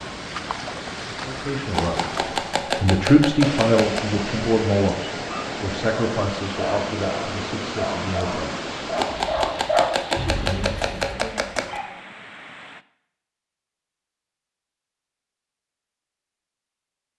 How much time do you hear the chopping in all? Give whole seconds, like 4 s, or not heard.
5 s.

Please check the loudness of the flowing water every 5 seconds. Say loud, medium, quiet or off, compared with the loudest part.
loud, loud, medium, off.